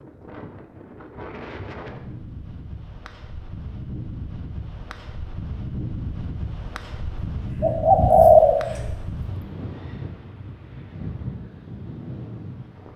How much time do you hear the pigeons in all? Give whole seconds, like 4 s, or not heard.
2 s.